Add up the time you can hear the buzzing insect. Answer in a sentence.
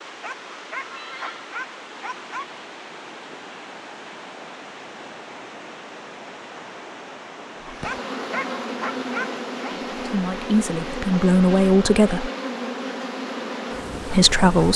You can hear the buzzing insect for 7 seconds altogether.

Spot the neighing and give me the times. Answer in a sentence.
The neighing can be heard from 0.8 to 1.4 s.